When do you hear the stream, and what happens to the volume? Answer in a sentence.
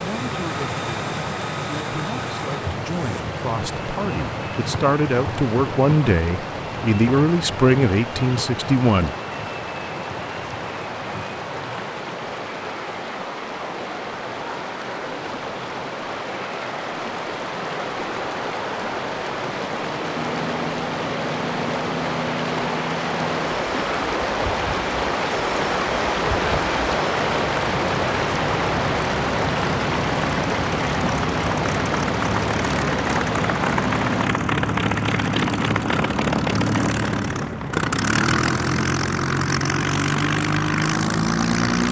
The stream can be heard from 0.0 to 34.4 s, getting louder.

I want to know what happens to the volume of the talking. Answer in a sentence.
The volume of the talking goes up.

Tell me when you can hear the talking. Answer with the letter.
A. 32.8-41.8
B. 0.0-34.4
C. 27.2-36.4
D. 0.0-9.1
D.